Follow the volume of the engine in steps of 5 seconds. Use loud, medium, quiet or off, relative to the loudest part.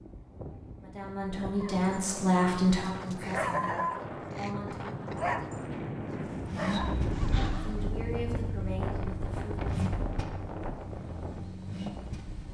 off, loud, medium.